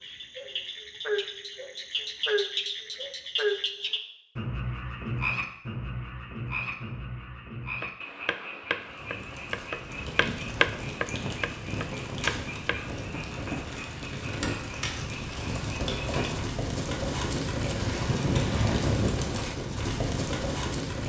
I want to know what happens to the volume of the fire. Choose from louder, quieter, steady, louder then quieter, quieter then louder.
louder.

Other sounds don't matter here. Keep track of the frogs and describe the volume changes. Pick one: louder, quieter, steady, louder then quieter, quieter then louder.
quieter.